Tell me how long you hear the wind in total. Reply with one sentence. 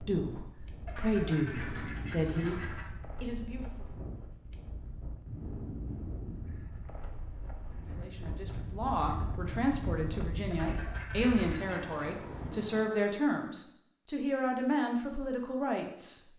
You can hear the wind for 13 seconds altogether.